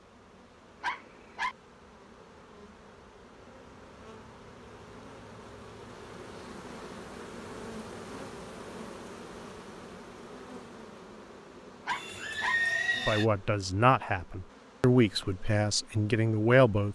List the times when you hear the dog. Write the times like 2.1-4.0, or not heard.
0.8-1.6, 11.8-12.6.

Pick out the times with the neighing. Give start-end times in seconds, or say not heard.
11.8-13.2.